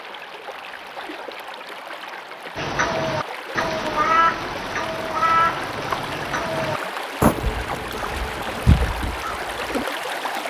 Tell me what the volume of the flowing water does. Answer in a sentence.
The volume of the flowing water goes up.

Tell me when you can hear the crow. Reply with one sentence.
You can hear the crow from 2.5 to 9.8 s.